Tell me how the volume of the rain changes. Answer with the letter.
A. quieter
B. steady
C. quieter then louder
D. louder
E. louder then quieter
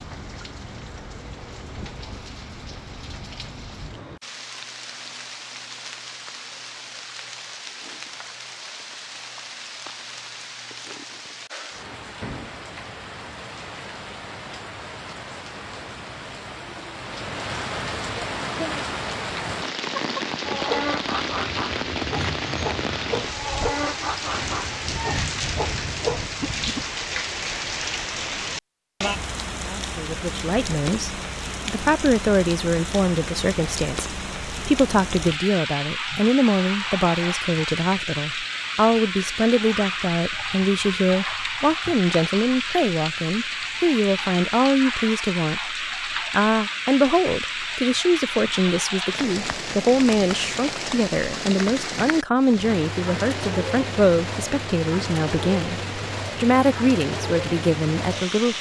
D.